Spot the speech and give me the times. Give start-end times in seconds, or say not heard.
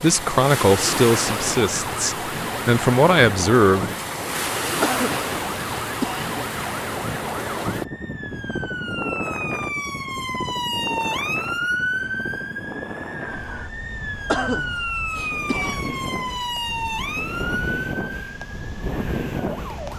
0.0-3.9.